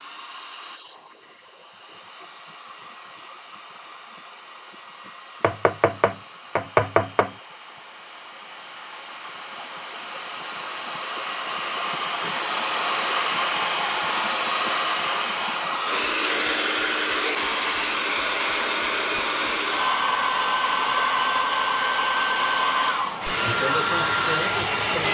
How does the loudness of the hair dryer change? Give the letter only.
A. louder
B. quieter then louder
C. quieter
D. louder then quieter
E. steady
A.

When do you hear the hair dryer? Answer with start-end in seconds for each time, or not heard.
0.0-25.0.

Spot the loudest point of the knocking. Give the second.
7 s.